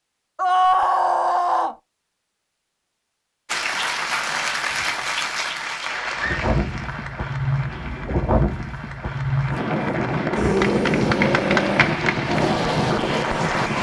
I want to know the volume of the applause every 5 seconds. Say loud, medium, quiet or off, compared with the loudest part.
loud, medium, loud.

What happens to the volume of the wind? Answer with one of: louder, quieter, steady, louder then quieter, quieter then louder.
steady.